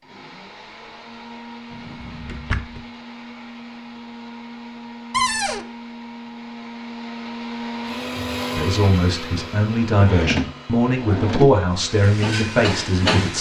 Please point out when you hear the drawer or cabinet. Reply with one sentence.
You can hear the drawer or cabinet from 1.7 to 2.9 s, from 5.1 to 5.7 s and from 10.0 to 11.6 s.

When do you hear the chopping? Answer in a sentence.
You can't hear the chopping here.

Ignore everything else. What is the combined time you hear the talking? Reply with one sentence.
The talking can be heard for 5 seconds in total.